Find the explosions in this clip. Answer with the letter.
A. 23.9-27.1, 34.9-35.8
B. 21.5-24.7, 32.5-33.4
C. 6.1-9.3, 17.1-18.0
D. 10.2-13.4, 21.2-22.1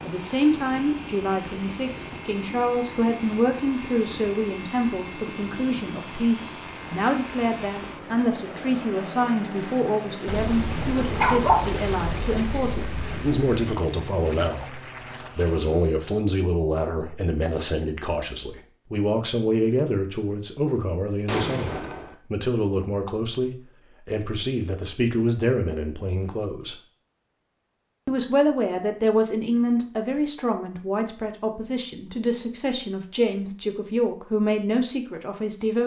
D.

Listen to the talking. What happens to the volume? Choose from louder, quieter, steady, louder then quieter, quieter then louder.
steady.